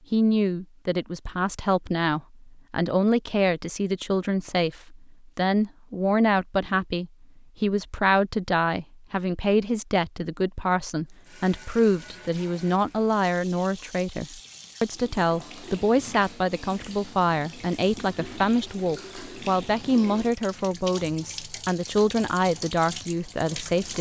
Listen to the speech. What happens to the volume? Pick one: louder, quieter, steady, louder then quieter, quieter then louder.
steady.